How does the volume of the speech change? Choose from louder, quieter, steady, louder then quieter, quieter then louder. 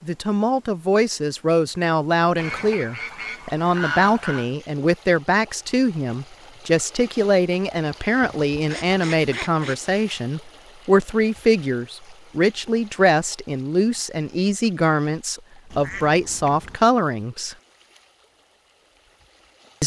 steady.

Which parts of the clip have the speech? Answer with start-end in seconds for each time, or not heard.
0.0-17.6.